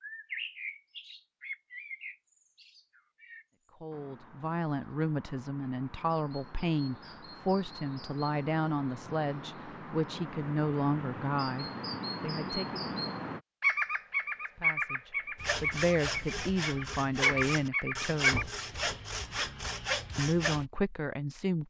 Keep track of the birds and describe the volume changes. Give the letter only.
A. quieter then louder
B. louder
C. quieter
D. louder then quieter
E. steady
A.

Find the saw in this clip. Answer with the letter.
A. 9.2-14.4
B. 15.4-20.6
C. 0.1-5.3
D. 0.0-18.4
B.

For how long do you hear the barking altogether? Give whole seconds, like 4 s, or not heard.
not heard.